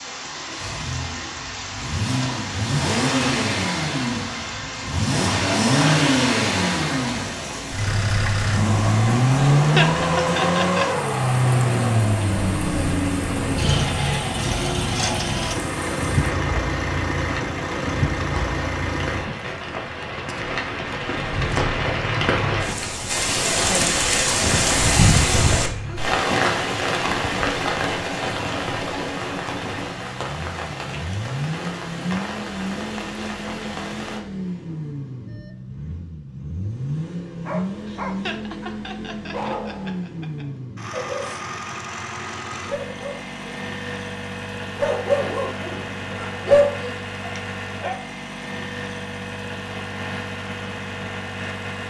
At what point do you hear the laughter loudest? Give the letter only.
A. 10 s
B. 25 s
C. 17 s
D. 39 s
A.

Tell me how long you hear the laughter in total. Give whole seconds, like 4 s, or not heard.
4 s.